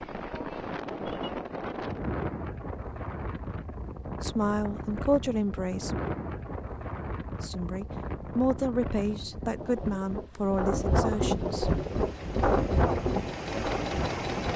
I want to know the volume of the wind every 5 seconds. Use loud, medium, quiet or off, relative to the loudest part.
medium, medium, loud.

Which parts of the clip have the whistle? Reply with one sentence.
You can't hear the whistle here.